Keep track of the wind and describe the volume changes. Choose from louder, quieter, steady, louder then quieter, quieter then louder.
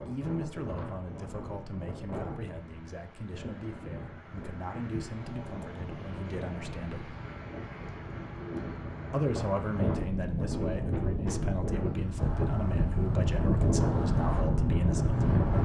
louder.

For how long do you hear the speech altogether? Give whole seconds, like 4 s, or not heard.
13 s.